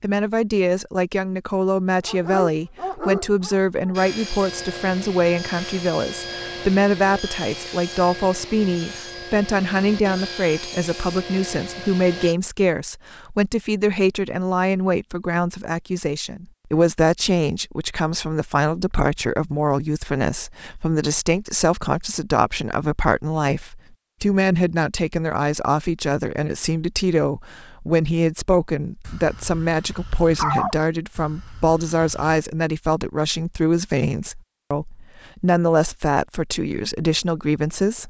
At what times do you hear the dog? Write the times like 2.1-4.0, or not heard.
2.0-4.0, 29.1-32.4.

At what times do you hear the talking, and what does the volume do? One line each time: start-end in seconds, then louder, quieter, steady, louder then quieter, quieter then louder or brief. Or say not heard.
0.0-38.0 steady.